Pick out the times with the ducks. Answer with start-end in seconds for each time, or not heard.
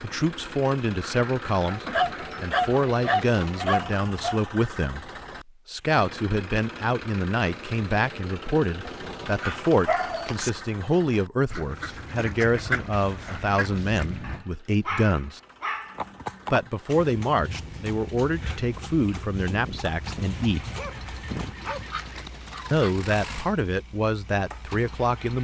1.0-2.6, 11.5-14.4, 21.6-23.1.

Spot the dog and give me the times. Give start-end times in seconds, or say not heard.
1.8-4.4, 8.8-10.5, 14.2-16.1, 19.4-21.9.